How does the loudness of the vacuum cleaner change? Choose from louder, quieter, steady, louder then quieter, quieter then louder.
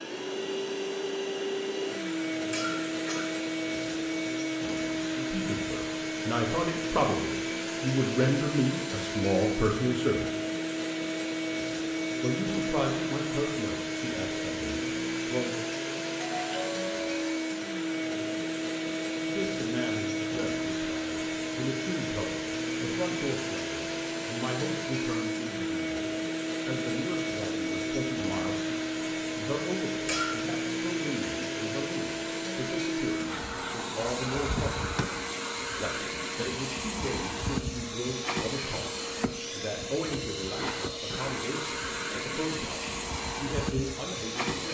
steady.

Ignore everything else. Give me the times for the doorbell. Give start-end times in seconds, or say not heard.
16.2-17.4.